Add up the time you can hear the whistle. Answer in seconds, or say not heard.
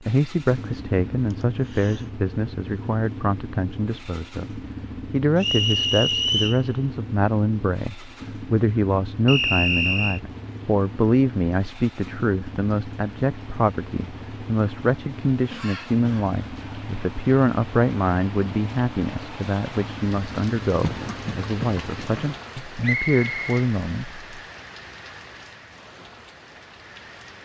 3 s.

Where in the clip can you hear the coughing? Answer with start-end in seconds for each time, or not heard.
1.3-2.1, 15.5-16.4, 20.8-22.3.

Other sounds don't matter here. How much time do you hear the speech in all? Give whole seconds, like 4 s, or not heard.
24 s.